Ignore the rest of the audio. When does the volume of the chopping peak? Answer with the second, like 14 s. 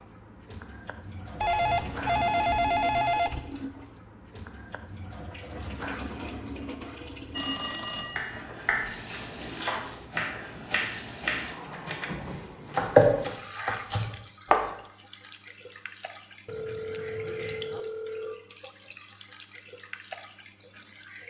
13 s.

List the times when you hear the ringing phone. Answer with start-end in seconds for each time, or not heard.
1.4-3.4, 7.3-8.4, 16.4-18.4.